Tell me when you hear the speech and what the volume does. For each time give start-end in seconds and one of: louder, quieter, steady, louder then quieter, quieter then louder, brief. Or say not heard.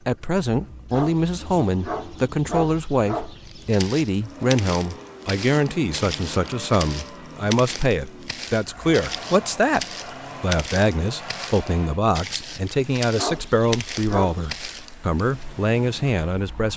0.1-16.7 steady.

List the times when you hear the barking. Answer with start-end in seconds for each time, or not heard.
0.9-3.7, 13.2-14.6.